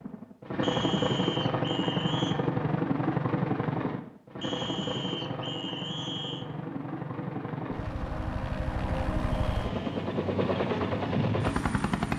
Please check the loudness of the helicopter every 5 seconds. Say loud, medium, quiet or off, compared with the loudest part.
loud, medium, loud.